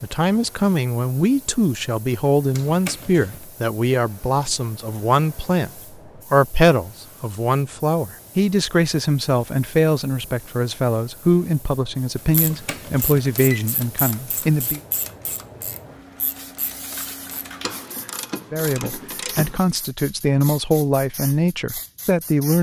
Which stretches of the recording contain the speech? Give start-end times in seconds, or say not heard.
0.0-14.8, 18.5-22.5.